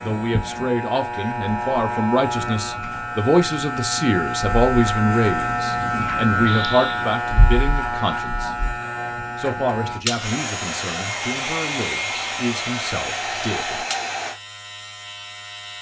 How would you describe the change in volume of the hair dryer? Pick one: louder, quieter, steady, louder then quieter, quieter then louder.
steady.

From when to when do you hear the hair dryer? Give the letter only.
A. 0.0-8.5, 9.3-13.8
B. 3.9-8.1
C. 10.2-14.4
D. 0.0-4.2
C.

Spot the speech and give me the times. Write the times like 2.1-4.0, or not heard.
0.0-8.5, 9.3-13.8.